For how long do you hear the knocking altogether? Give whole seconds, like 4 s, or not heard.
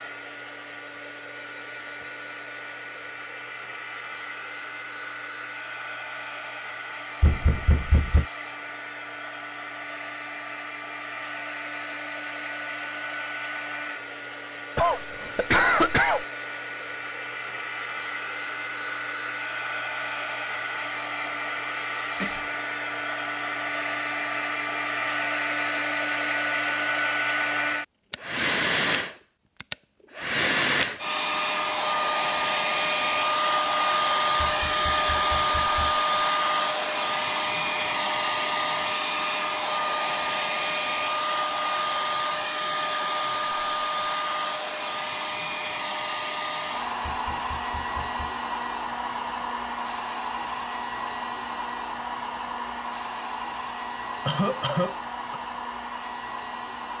4 s.